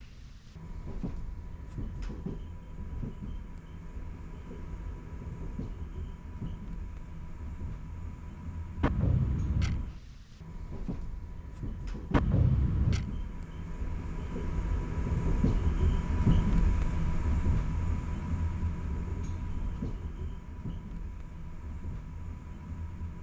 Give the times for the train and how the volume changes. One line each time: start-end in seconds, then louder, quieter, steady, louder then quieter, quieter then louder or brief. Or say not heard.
0.0-23.1 louder then quieter.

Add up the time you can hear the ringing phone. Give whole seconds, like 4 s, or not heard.
2 s.